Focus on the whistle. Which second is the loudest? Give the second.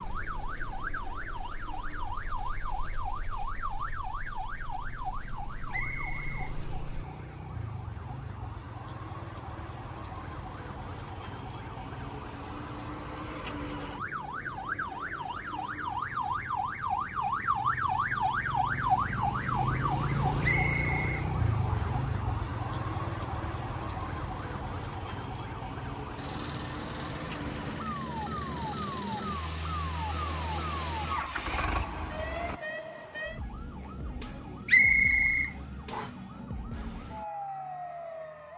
35 s.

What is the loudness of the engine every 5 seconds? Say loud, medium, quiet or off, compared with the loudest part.
quiet, quiet, off, off, off, loud, loud, off.